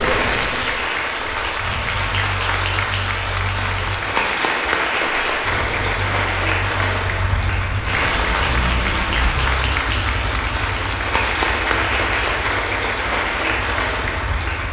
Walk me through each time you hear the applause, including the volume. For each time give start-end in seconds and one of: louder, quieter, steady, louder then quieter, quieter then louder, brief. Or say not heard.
0.0-14.6 steady.